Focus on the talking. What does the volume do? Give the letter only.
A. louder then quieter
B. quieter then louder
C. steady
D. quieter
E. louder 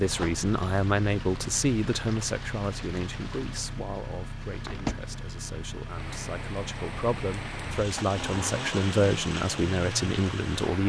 B.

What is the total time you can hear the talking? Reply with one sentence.
You can hear the talking for 11 seconds altogether.